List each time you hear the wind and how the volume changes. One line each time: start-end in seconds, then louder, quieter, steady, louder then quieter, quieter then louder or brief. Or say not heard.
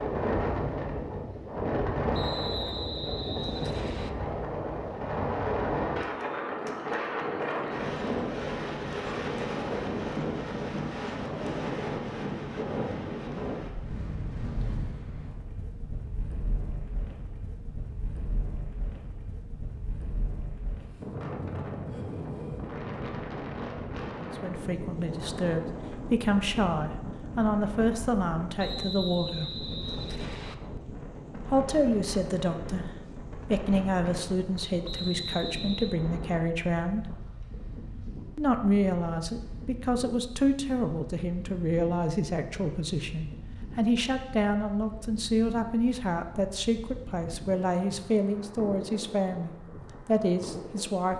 0.0-51.1 quieter.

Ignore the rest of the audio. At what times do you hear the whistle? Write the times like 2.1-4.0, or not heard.
2.1-4.1, 28.6-30.6, 34.9-36.0.